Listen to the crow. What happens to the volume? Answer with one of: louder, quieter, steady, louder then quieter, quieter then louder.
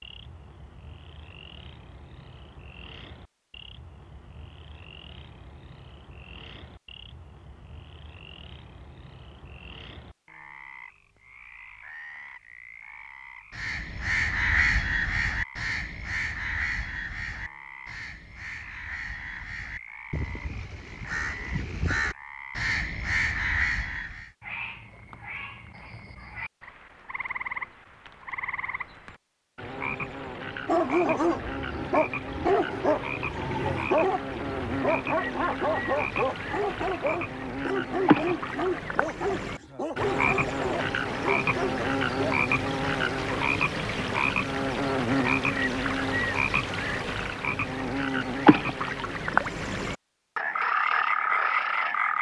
quieter then louder.